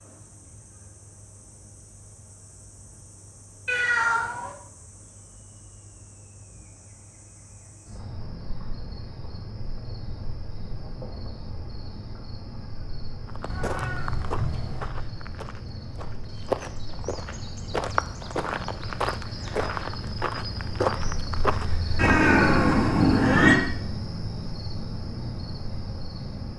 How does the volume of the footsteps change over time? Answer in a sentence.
The volume of the footsteps goes up.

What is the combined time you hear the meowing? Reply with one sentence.
You can hear the meowing for 4 seconds altogether.